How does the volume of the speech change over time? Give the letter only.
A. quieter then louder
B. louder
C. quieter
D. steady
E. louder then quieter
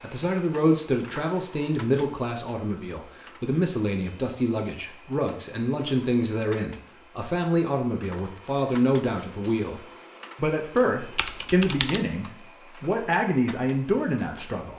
D.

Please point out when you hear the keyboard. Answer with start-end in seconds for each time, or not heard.
10.8-12.0.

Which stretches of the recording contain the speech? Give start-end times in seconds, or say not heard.
0.0-14.7.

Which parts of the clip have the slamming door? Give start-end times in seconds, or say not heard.
not heard.